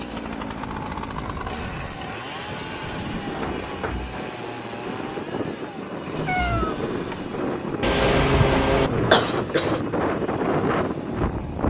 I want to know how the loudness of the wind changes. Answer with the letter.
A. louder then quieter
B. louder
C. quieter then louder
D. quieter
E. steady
B.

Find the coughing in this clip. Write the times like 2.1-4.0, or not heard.
7.8-9.8.